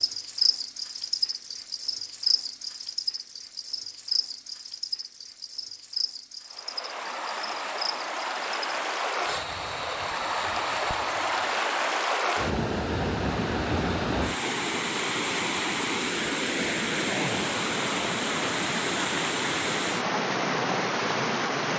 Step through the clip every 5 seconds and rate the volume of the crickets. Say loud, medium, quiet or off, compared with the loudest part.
loud, medium, quiet, off, off.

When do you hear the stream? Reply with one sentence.
The stream can be heard from 6.5 to 21.7 s.